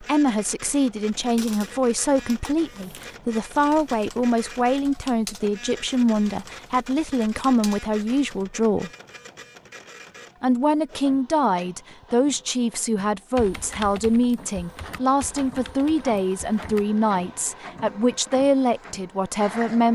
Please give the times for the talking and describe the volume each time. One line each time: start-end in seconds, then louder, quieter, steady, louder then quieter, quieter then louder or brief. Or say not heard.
0.0-8.9 steady
10.4-19.8 steady.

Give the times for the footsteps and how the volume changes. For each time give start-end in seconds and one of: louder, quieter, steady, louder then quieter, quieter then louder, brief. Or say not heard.
not heard.